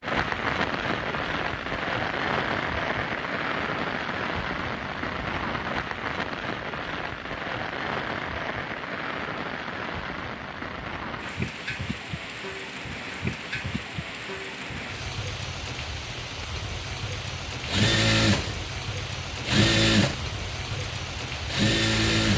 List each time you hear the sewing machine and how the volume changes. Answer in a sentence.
You can hear the sewing machine from 17.6 to 22.3 s, getting quieter then louder.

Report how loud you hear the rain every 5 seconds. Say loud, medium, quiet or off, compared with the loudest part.
loud, loud, medium, medium, medium.